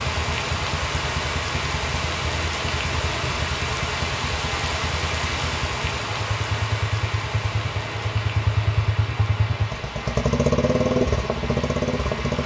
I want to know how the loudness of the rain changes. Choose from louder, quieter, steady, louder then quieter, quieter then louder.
quieter.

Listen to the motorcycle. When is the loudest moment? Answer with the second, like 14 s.
11 s.